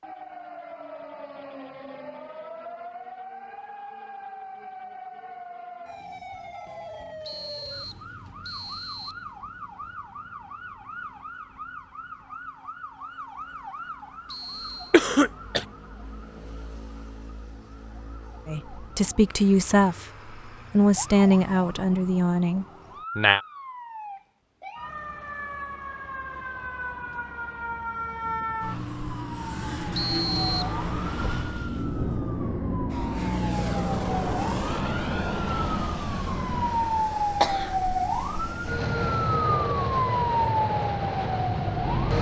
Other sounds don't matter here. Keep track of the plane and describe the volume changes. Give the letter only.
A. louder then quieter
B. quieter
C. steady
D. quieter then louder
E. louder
D.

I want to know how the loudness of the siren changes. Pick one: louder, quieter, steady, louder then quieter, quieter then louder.
louder.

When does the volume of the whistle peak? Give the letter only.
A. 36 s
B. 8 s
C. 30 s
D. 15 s
C.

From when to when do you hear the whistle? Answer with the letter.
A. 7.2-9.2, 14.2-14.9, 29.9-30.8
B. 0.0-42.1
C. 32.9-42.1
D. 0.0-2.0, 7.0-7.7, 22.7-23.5
A.